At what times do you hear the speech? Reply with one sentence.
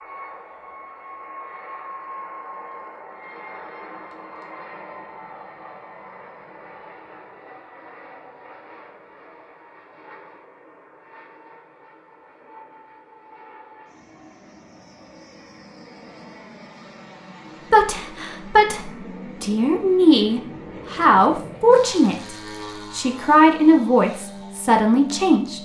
The speech can be heard from 17.7 to 25.6 s.